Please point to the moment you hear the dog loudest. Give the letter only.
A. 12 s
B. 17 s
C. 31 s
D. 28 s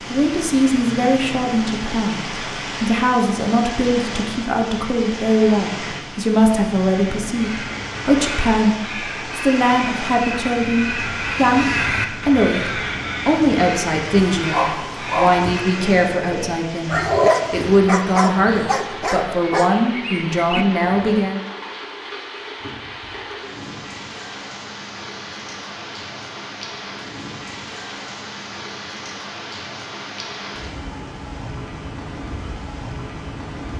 B.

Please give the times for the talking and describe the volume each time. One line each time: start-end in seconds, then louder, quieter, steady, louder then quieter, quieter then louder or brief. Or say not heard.
0.1-21.4 steady.